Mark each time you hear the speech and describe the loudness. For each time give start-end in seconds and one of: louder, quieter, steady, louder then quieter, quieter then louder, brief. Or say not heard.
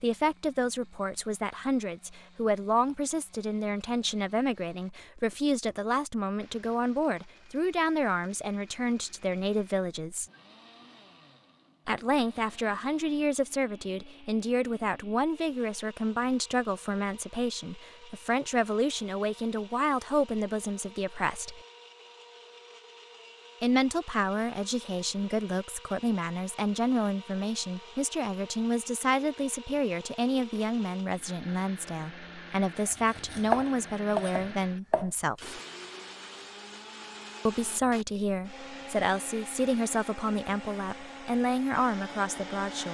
0.0-10.2 steady
11.8-21.6 steady
23.6-35.6 steady
37.5-42.8 steady.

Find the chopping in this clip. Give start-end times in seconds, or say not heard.
32.9-35.1.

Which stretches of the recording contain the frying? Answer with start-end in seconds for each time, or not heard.
not heard.